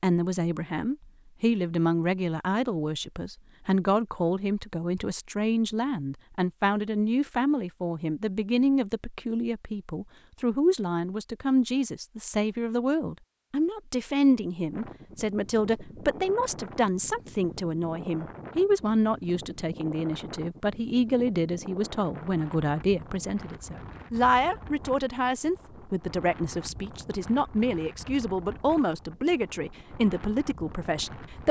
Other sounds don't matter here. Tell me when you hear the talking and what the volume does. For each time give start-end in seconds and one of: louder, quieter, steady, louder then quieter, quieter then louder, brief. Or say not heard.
0.0-31.4 steady.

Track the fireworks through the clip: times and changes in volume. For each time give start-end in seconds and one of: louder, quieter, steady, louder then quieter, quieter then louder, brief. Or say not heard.
not heard.